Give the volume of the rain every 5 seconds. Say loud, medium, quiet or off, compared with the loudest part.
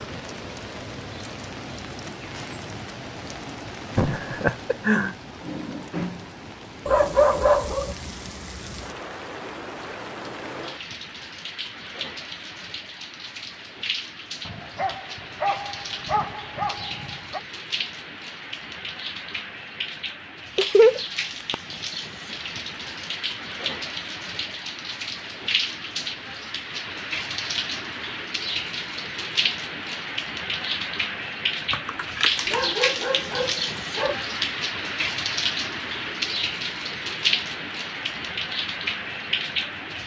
medium, medium, medium, medium, medium, loud, loud, loud.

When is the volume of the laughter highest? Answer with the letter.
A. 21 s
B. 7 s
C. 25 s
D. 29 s
A.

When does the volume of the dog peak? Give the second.
7 s.